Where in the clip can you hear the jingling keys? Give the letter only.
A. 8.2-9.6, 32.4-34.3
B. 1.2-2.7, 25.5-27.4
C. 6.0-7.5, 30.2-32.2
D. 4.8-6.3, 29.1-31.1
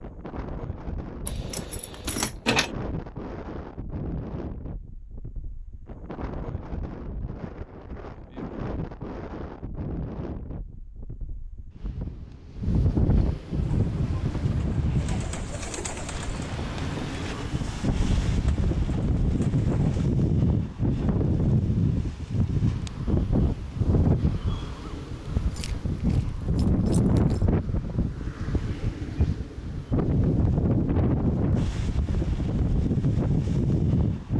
B.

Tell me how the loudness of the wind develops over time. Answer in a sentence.
The volume of the wind goes up.